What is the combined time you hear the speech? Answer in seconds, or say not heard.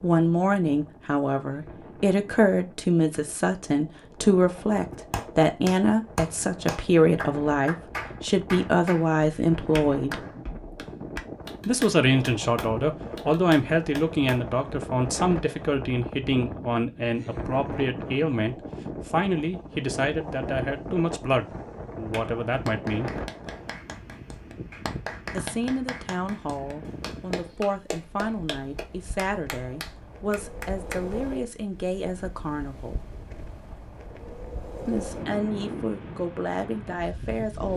32 s.